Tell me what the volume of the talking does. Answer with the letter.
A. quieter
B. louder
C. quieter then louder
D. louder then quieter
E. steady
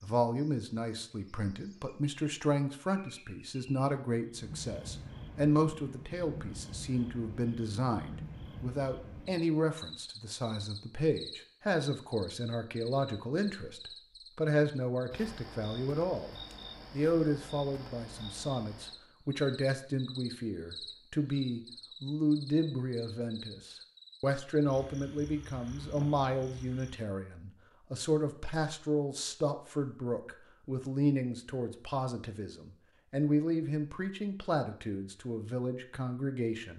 E.